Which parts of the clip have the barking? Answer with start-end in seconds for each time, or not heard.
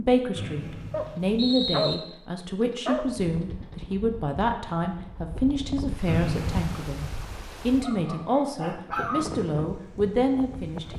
0.9-3.5, 7.8-9.2.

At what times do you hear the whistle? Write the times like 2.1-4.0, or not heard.
0.3-1.9, 6.0-6.8.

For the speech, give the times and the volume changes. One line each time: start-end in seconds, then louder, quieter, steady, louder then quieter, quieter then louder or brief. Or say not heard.
0.0-10.9 steady.